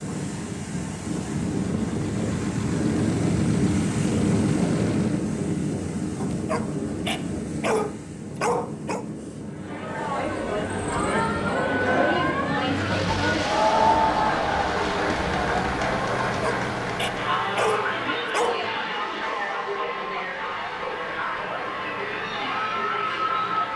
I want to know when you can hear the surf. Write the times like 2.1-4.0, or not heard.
0.0-14.4.